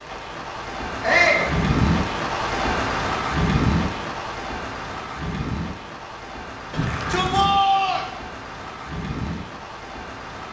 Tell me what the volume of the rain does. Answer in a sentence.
The volume of the rain goes down.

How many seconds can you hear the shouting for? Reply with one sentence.
You can hear the shouting for 2 seconds altogether.